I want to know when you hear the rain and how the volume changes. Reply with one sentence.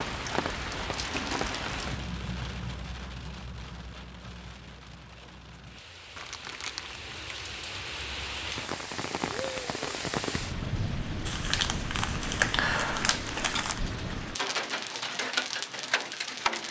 The rain can be heard from 0.0 to 16.6 s, getting quieter then louder.